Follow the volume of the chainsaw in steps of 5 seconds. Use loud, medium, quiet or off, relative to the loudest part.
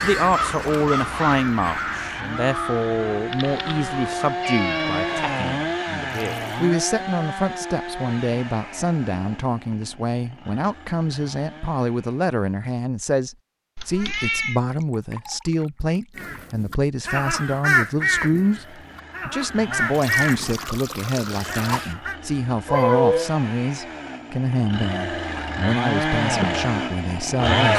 medium, medium, quiet, quiet, quiet, loud.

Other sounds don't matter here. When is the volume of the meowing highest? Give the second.
23 s.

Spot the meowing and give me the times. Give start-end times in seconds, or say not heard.
3.3-5.5, 13.8-14.6, 22.6-23.3.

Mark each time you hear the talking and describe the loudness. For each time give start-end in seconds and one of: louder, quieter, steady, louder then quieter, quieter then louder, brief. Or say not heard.
0.0-27.7 steady.